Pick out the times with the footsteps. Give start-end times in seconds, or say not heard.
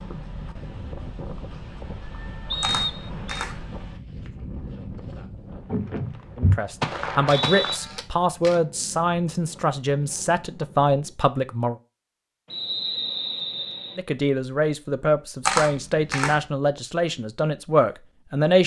5.5-7.8.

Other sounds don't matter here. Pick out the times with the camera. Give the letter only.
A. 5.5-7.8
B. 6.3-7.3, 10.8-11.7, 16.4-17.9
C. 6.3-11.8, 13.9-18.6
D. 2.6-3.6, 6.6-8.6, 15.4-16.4
D.